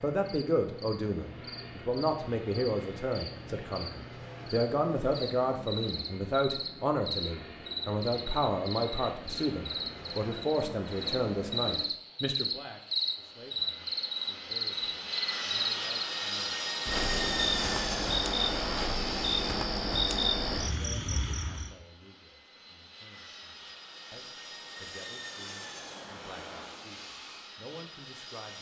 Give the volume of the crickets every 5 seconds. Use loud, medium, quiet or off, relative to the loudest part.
quiet, medium, loud, loud, loud, off.